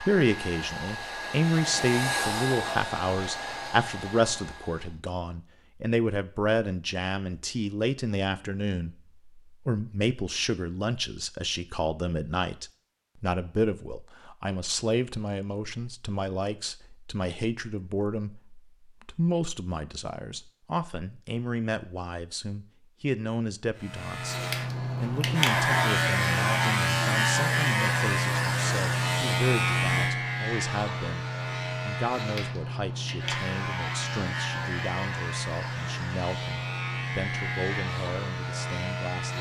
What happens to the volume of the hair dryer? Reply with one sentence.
The loudness of the hair dryer goes up, then down.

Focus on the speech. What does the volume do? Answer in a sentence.
The loudness of the speech goes down.